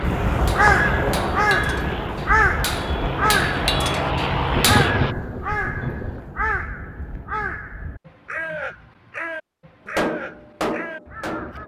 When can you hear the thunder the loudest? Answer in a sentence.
The loudest moment of the thunder is at 5 seconds.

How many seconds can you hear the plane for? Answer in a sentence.
You can hear the plane for 5 seconds altogether.